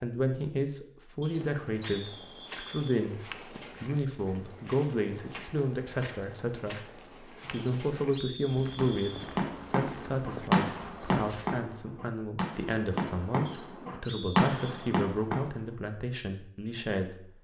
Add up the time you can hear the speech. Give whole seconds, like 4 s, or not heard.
17 s.